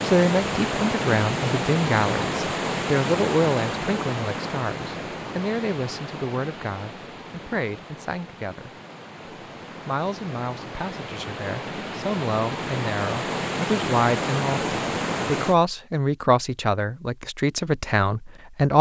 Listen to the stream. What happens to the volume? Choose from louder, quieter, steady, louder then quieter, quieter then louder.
quieter then louder.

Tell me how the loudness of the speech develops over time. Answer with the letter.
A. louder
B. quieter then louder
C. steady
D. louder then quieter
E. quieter
B.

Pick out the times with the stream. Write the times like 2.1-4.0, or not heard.
0.0-15.6.